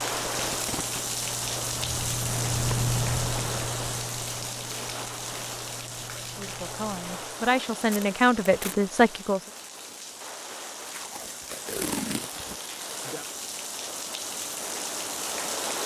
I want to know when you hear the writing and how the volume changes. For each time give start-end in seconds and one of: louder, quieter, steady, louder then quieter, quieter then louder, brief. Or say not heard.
0.0-7.5 louder then quieter.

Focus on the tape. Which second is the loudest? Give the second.
12 s.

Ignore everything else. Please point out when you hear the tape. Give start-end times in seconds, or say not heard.
0.3-1.0, 7.8-8.8, 10.8-12.6.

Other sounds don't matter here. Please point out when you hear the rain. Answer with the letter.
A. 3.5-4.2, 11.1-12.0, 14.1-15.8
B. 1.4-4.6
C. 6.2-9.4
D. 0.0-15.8
D.